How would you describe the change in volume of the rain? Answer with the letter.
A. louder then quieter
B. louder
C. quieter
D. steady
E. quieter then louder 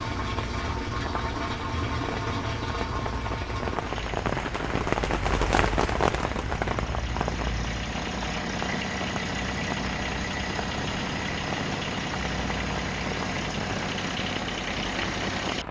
A.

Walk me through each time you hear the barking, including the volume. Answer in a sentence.
You can't hear the barking here.